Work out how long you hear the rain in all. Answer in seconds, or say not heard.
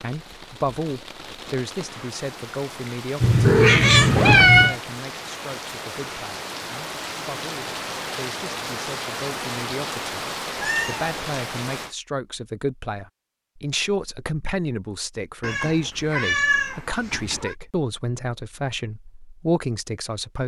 12 s.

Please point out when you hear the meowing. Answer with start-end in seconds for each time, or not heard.
3.2-4.8, 10.6-11.1, 15.4-17.6.